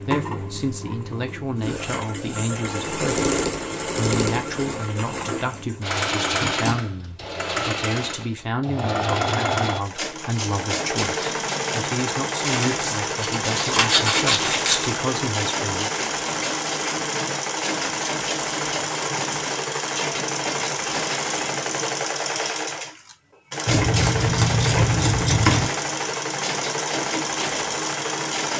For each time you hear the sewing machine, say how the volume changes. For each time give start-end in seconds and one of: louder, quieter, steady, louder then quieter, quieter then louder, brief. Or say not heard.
0.0-28.5 steady.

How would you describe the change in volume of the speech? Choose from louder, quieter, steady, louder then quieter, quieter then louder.
steady.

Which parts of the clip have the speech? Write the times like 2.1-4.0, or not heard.
0.0-15.9.